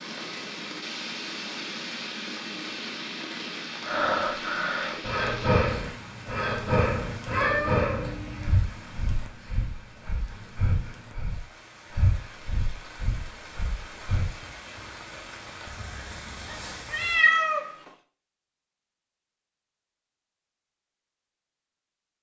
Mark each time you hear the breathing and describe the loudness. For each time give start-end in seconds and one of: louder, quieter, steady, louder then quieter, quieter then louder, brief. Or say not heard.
3.8-14.3 quieter.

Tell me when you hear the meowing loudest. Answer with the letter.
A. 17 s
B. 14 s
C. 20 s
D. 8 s
A.